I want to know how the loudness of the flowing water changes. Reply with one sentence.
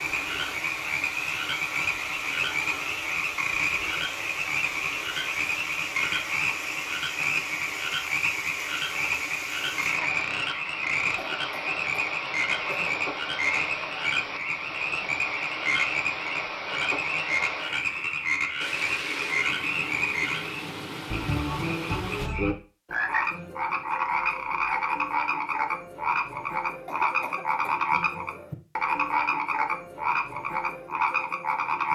The loudness of the flowing water stays about the same.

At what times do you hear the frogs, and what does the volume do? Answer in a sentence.
You can hear the frogs from 0.0 to 31.9 s, at a steady volume.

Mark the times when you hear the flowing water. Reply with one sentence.
The flowing water can be heard from 0.0 to 22.3 s.